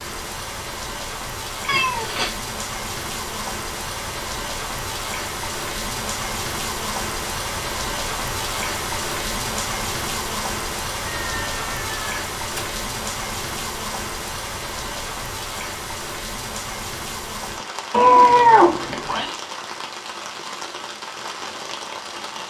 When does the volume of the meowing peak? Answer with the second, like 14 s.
18 s.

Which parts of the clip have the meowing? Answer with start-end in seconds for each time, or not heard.
1.6-2.3, 11.1-12.8, 17.9-19.3.